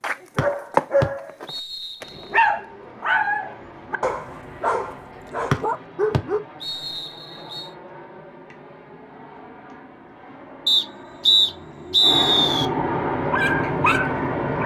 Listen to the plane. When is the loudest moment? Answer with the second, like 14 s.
13 s.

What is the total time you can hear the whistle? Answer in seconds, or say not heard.
6 s.